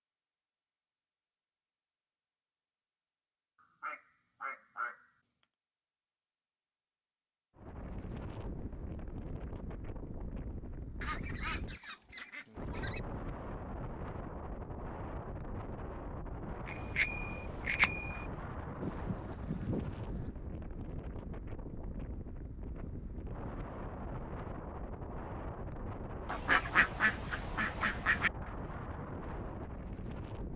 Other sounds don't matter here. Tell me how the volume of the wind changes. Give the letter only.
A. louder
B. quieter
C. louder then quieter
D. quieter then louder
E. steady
E.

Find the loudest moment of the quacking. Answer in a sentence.
The loudest moment of the quacking is at 27 seconds.